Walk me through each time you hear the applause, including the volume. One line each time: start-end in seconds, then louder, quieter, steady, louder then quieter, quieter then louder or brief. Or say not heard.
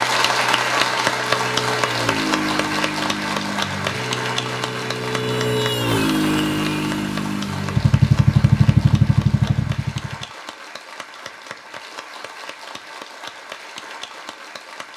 0.0-14.9 quieter.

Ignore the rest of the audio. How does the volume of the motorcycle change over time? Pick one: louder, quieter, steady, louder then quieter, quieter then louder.
louder.